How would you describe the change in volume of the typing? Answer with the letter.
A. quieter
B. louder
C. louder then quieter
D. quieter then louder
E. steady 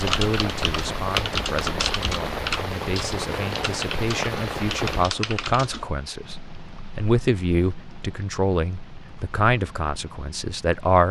A.